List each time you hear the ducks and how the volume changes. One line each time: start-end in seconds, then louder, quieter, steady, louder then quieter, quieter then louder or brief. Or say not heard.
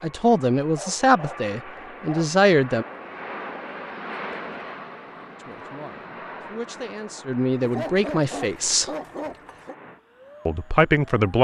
not heard.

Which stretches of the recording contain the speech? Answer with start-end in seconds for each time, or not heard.
0.0-2.9, 5.3-8.9, 10.4-11.3.